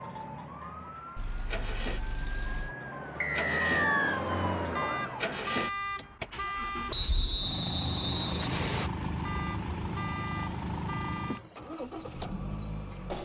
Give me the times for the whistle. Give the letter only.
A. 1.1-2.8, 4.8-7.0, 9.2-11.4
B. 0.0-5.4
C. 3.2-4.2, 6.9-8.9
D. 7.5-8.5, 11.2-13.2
C.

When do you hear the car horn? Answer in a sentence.
You can hear the car horn from 1.1 to 2.8 s, from 4.8 to 7.0 s and from 9.2 to 11.4 s.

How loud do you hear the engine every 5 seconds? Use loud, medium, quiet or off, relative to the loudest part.
medium, loud, loud.